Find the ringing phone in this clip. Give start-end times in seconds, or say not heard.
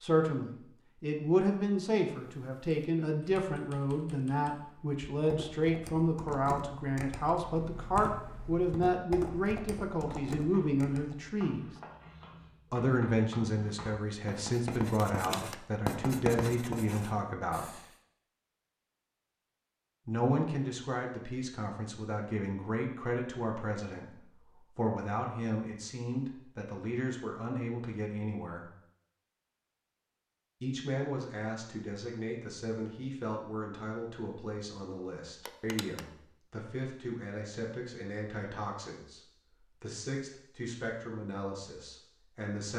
15.2-15.6, 35.5-36.0.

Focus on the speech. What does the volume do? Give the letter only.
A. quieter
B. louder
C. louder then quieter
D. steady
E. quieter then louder
A.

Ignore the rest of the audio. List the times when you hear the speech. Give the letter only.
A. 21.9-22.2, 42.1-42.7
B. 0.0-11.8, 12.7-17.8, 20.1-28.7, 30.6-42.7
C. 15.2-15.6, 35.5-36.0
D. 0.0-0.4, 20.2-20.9
B.